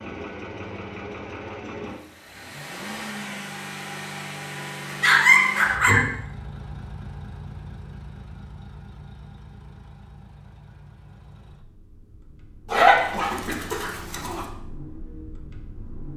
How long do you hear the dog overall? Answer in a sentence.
You can hear the dog for 3 seconds altogether.